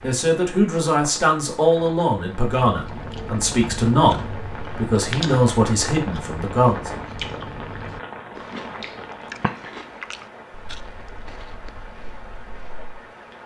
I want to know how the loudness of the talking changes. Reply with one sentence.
The volume of the talking stays about the same.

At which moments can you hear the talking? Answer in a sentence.
The talking can be heard from 0.0 to 6.9 s.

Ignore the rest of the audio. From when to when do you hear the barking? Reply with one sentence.
The barking can't be heard in this clip.